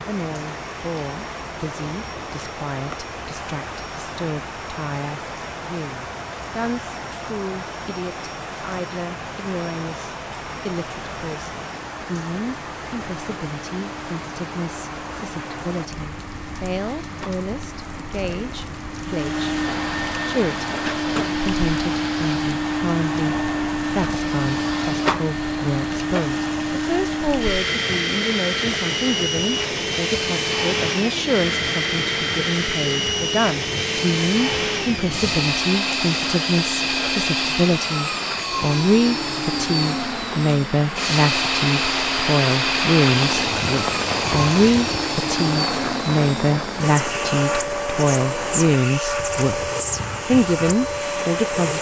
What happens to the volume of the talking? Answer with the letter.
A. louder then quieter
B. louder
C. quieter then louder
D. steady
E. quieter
B.